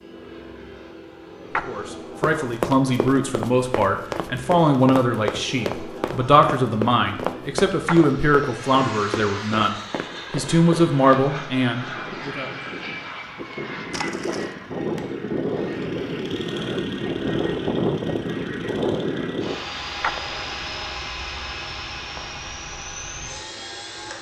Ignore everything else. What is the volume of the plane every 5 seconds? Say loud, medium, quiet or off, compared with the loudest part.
quiet, medium, medium, loud, medium.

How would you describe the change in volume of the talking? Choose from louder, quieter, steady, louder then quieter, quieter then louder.
steady.